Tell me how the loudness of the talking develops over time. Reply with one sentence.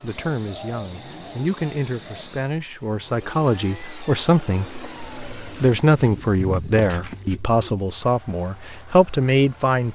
The volume of the talking goes up.